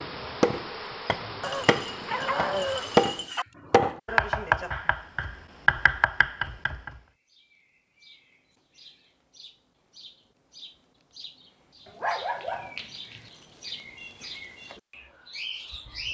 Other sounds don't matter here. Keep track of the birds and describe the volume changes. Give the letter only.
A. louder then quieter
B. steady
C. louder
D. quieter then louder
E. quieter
C.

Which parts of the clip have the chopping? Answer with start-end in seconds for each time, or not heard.
0.0-6.9.